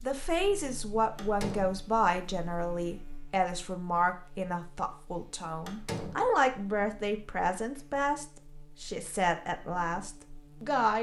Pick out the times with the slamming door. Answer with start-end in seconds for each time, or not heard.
1.1-1.8, 5.7-6.3.